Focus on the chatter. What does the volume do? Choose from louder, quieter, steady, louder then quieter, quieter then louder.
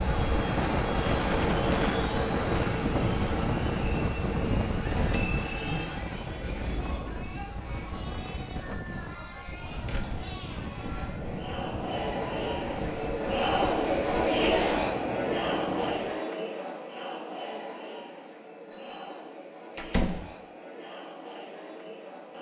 louder then quieter.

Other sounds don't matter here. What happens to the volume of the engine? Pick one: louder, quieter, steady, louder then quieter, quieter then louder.
quieter.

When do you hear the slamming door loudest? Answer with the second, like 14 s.
20 s.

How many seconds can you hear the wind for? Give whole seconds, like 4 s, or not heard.
16 s.